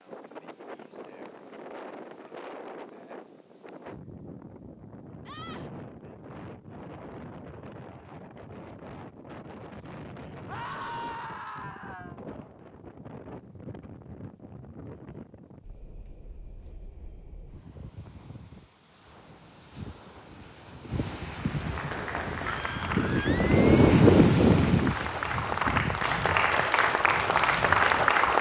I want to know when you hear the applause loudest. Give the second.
28 s.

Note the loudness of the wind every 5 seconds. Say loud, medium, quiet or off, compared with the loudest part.
quiet, quiet, quiet, quiet, loud, quiet.